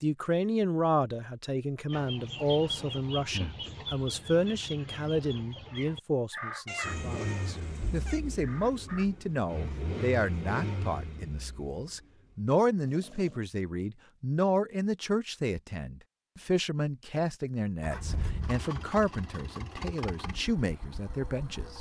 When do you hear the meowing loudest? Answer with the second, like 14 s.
7 s.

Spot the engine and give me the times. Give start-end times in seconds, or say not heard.
6.8-13.4, 17.8-21.7.